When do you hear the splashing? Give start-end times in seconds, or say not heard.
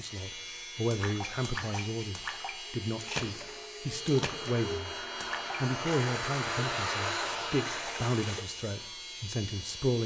0.9-8.4.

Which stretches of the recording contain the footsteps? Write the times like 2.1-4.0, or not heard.
not heard.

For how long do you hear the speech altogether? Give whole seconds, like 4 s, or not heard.
9 s.